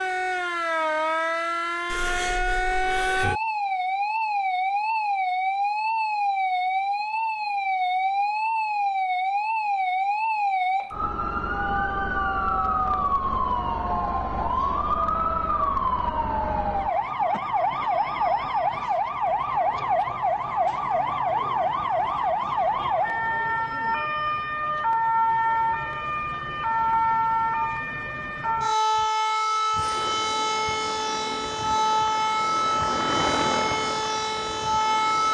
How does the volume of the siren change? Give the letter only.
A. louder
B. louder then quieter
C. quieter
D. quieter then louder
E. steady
E.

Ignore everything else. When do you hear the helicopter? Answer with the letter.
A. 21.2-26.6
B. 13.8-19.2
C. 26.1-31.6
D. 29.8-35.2
D.